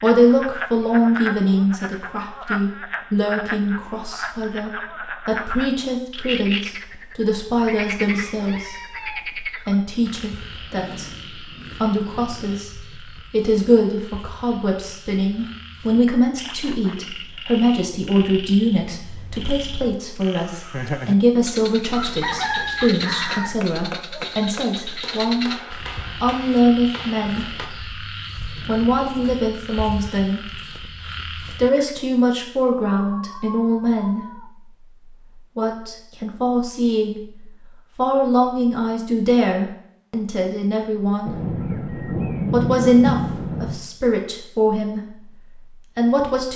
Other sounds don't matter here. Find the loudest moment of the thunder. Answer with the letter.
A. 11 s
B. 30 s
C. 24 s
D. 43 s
D.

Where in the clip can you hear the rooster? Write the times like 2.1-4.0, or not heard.
7.7-9.3, 21.9-23.6, 33.0-34.5.